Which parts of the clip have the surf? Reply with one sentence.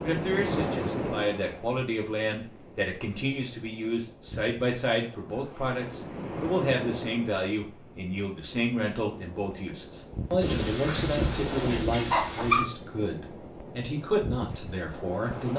You can hear the surf from 0.0 to 15.5 s.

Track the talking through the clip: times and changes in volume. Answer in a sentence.
You can hear the talking from 0.0 to 15.5 s, at a steady volume.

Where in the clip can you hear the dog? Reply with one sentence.
You can hear the dog from 10.4 to 12.7 s.